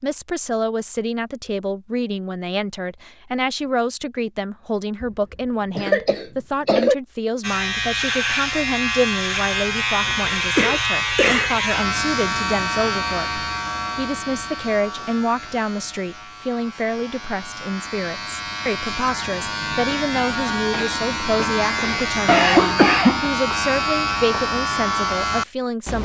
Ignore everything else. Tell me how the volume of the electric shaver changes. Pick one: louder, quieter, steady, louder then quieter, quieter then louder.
quieter then louder.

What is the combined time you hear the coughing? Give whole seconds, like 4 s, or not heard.
3 s.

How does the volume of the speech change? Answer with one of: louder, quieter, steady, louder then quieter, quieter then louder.
steady.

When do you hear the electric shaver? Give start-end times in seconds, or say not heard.
7.4-26.0.